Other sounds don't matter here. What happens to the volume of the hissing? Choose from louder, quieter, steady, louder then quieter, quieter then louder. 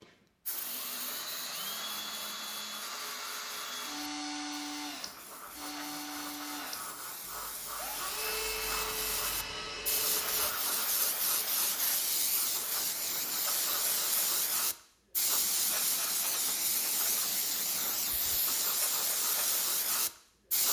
louder.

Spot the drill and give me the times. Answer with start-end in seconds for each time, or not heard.
0.0-10.5.